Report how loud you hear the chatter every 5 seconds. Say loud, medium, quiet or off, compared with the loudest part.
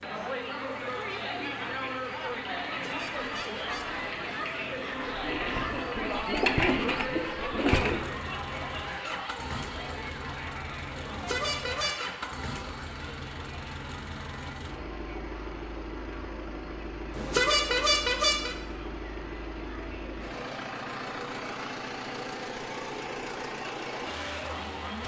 loud, loud, medium, quiet, medium.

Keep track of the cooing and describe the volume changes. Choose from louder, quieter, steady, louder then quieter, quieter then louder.
louder.